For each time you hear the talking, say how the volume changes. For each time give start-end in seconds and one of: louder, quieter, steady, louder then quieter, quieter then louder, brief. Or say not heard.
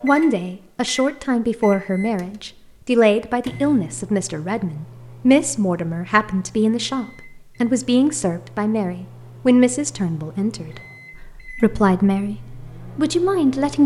0.0-13.8 steady.